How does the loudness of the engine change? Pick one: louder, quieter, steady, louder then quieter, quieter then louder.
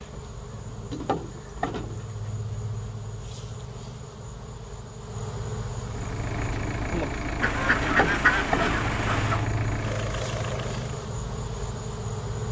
steady.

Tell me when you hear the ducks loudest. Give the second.
8 s.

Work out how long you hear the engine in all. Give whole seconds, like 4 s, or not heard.
5 s.